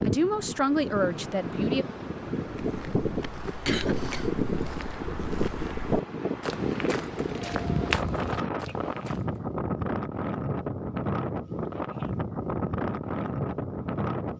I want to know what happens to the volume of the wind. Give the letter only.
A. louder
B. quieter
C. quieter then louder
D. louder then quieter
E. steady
E.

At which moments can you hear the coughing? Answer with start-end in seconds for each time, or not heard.
3.6-4.2.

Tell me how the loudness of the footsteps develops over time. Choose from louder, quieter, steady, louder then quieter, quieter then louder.
louder.